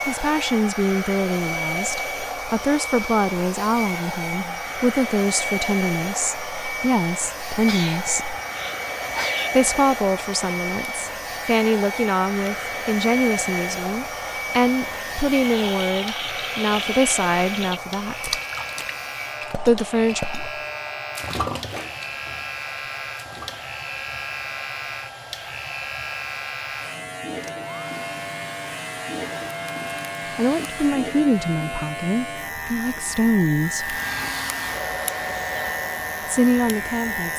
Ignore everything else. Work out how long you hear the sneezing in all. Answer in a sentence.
You can hear the sneezing for 2 seconds altogether.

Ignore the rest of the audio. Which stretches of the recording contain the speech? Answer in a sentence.
You can hear the speech from 0.1 to 8.3 s, from 9.5 to 18.4 s, from 19.6 to 20.2 s, from 30.4 to 34.0 s and from 36.2 to 37.3 s.